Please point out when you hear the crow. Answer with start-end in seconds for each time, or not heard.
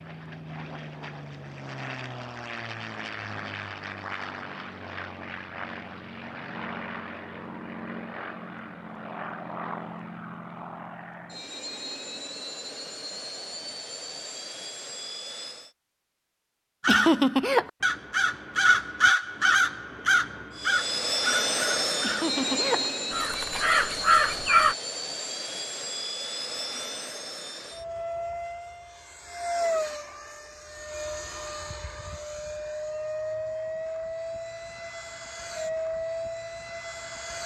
16.8-24.8.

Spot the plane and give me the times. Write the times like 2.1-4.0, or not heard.
0.0-15.7, 20.5-37.4.